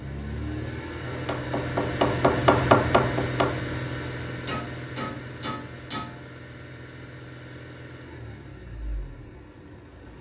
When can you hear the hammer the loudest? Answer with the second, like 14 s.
3 s.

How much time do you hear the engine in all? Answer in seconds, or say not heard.
10 s.